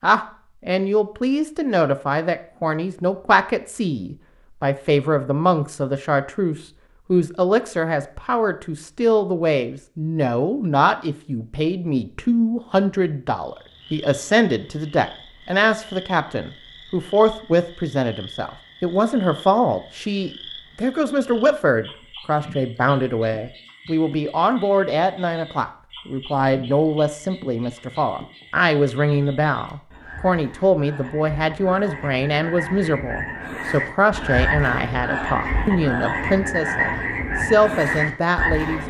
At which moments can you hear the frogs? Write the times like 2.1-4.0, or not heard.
13.4-38.8.